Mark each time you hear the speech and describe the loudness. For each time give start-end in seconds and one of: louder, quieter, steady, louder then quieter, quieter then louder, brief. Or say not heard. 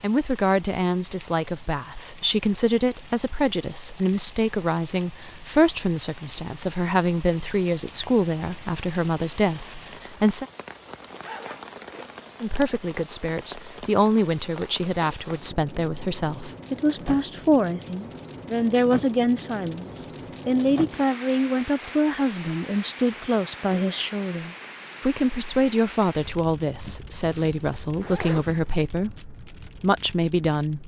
0.0-10.4 steady
12.4-30.8 steady.